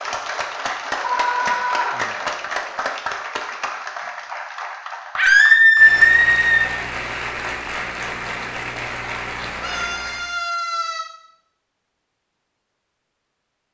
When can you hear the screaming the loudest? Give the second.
6 s.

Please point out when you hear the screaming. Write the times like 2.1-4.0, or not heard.
1.0-2.0, 5.2-6.7, 9.6-11.1.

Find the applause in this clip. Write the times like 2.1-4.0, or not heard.
0.0-10.3.